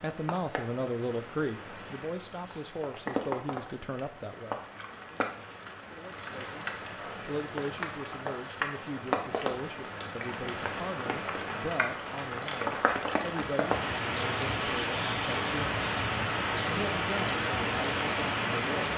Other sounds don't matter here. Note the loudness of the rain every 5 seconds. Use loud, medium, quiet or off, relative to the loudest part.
medium, medium, loud, loud.